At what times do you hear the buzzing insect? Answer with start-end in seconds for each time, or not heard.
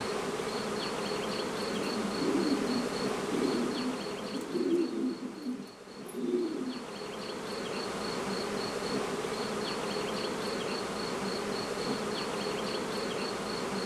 0.0-13.8.